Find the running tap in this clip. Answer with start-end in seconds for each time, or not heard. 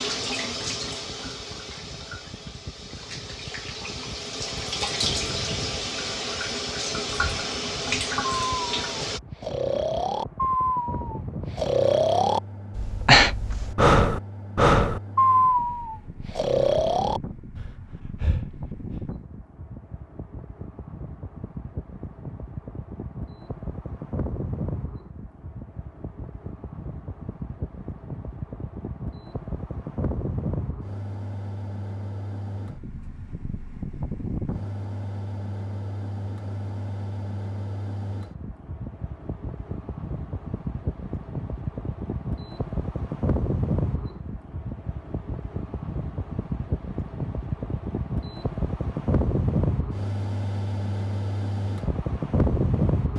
0.0-9.2.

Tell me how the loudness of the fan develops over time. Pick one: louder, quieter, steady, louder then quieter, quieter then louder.
louder.